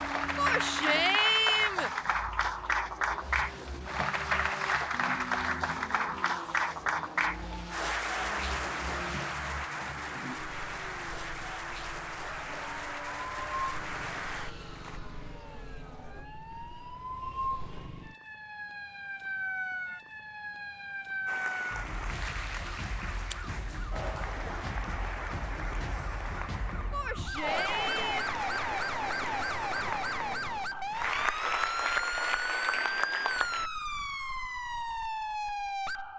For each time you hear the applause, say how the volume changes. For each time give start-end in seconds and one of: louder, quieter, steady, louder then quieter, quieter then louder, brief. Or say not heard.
0.0-15.0 quieter
21.2-33.7 louder.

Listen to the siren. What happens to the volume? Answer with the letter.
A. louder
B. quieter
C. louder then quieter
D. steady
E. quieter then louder
A.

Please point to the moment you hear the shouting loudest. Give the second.
1 s.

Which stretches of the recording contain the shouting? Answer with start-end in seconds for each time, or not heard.
0.3-1.9, 26.9-28.4.